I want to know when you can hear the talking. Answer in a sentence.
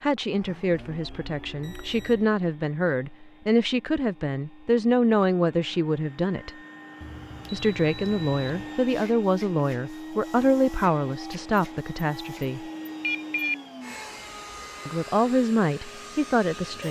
You can hear the talking from 0.0 to 6.5 s, from 7.5 to 12.6 s and from 14.8 to 16.8 s.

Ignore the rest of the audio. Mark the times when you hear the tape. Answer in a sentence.
The tape can't be heard in this clip.